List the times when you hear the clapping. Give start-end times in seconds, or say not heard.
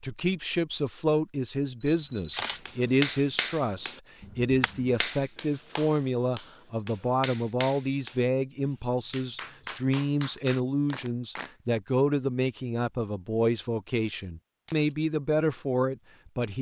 2.6-11.5.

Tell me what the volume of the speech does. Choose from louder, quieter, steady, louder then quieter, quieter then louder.
steady.